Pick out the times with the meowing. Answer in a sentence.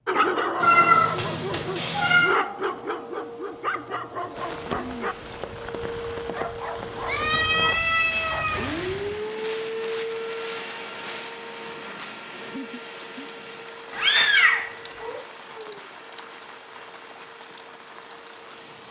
You can hear the meowing from 0.6 to 2.4 s, from 7.0 to 9.2 s and from 13.9 to 15.2 s.